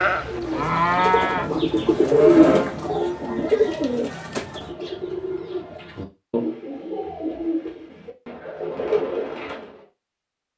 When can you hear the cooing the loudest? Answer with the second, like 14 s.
2 s.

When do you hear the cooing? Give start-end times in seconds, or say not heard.
0.2-9.8.